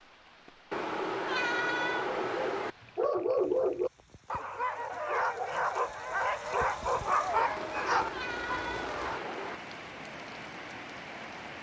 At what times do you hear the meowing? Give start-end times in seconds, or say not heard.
0.7-2.8, 7.5-9.6.